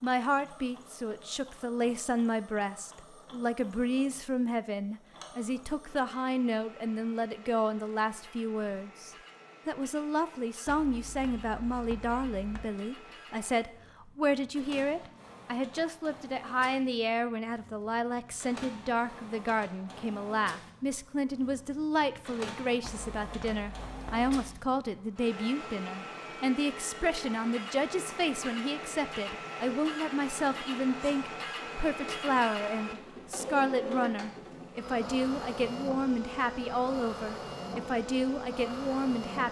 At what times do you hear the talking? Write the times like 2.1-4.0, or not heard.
0.0-39.4.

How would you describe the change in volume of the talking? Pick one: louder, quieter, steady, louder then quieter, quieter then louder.
steady.